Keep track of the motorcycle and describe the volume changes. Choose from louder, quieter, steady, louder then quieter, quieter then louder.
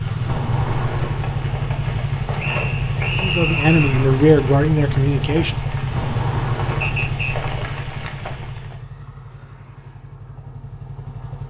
quieter.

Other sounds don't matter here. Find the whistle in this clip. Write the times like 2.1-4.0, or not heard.
2.4-4.0, 6.8-7.3.